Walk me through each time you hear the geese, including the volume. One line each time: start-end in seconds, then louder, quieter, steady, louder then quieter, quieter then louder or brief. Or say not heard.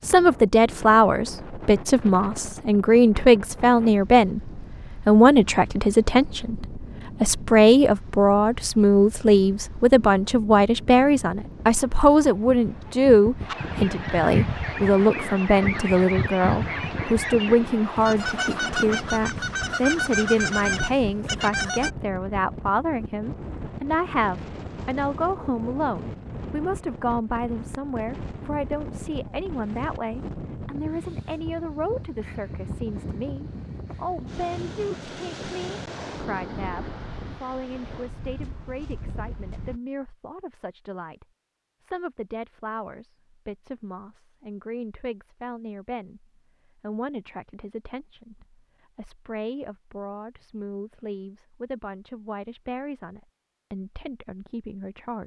13.4-21.9 steady.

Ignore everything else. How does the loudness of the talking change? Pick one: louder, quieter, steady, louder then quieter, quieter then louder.
quieter.